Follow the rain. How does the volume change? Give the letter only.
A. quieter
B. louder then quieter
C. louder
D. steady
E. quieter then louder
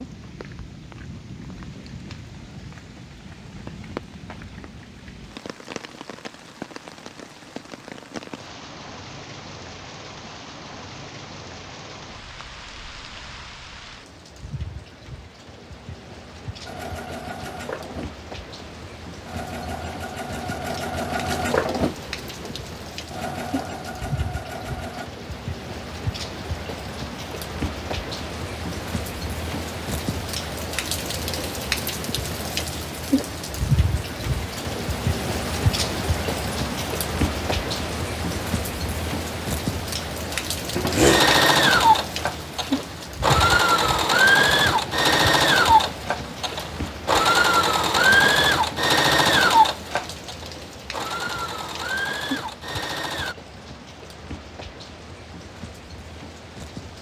B.